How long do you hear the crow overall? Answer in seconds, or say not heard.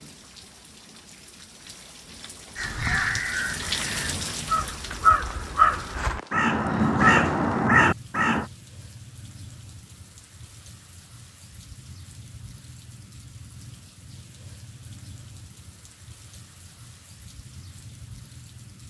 6 s.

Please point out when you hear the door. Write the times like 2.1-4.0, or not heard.
not heard.